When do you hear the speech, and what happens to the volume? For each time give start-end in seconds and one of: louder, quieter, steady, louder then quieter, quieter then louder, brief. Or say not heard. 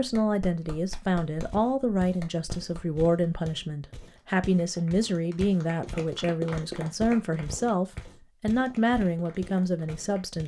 0.0-10.4 steady.